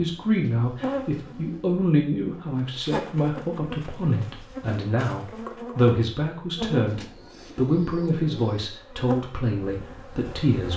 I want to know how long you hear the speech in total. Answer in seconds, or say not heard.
11 s.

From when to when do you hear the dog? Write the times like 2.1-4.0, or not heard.
not heard.